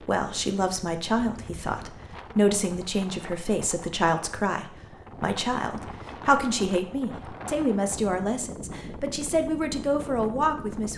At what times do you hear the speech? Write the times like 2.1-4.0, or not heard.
0.1-10.9.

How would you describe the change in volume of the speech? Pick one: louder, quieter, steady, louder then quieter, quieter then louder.
steady.